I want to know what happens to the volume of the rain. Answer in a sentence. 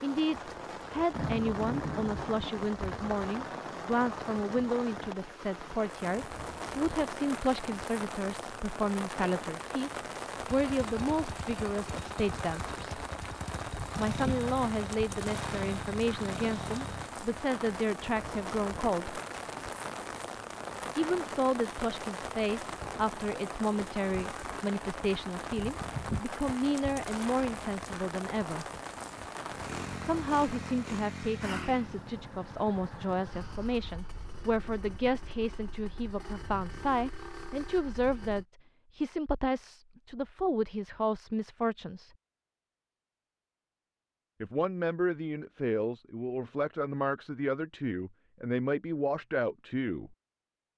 The volume of the rain stays about the same.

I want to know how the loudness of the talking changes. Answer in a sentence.
The volume of the talking stays about the same.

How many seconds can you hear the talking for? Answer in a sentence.
The talking can be heard for 44 seconds in total.